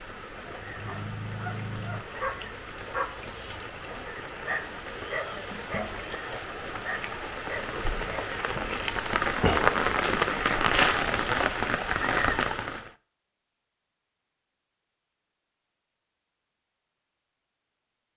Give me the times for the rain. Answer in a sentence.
The rain can be heard from 0.0 to 12.9 s.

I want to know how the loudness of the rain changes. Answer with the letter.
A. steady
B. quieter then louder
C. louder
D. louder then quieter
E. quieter
C.